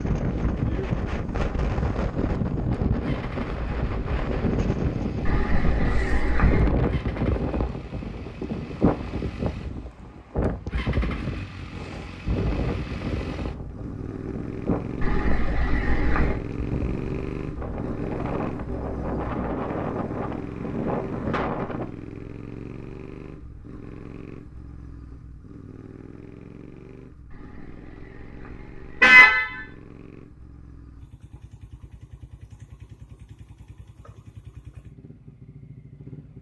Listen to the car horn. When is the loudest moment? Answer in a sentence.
The volume of the car horn peaks at 29 seconds.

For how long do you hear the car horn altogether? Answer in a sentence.
You can hear the car horn for 5 seconds altogether.